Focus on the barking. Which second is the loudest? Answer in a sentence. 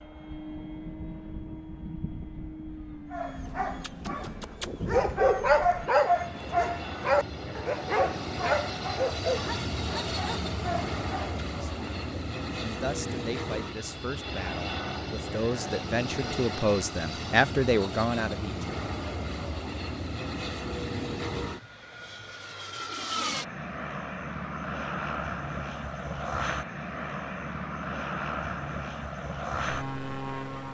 The loudest moment of the barking is at 5 seconds.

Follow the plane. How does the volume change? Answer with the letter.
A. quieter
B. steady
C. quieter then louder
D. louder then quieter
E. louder
E.